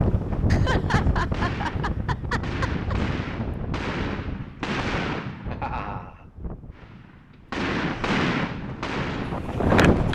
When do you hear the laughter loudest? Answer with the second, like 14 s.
1 s.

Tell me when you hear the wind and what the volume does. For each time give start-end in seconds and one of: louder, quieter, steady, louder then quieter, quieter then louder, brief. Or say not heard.
0.0-10.1 quieter then louder.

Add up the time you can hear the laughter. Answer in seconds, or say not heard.
3 s.